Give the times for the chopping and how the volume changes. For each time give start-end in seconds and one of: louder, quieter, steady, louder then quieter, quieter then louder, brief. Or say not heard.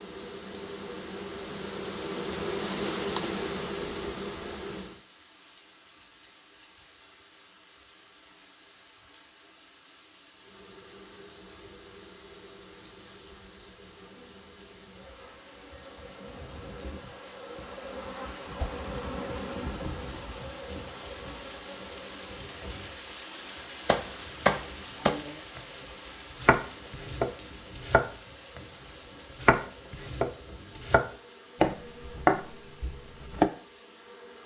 23.9-25.6 brief
26.4-28.6 brief
29.4-33.5 louder then quieter.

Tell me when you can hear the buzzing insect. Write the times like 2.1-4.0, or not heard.
0.0-5.0, 10.3-34.4.